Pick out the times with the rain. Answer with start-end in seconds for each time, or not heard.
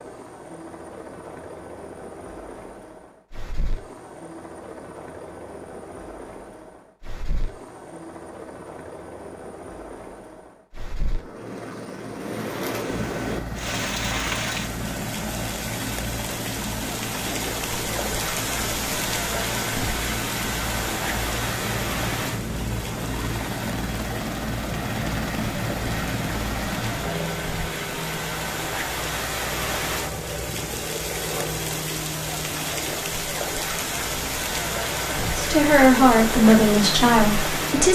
12.2-37.9.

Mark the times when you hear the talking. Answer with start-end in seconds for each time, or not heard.
35.4-37.9.